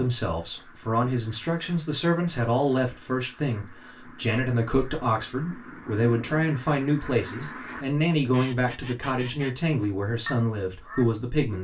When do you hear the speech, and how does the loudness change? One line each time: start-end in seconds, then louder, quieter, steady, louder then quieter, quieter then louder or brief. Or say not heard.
0.0-11.5 steady.